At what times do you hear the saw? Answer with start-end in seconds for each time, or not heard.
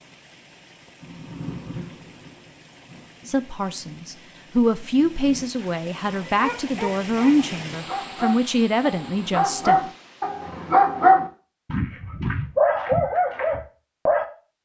not heard.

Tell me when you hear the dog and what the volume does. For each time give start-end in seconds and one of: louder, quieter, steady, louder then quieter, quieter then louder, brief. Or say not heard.
6.3-14.2 louder.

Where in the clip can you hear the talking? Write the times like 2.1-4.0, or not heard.
3.2-9.8.